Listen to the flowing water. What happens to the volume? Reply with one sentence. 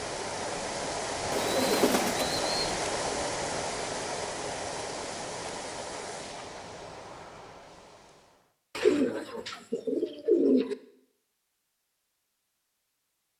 The loudness of the flowing water goes down.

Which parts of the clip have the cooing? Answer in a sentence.
The cooing can be heard from 1.3 to 2.9 s and from 8.8 to 10.8 s.